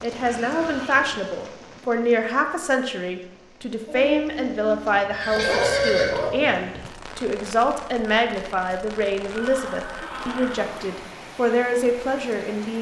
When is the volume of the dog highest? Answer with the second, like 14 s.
6 s.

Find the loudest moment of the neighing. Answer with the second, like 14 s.
6 s.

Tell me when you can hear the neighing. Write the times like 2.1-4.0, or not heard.
0.2-1.1, 5.1-6.2, 9.3-11.1.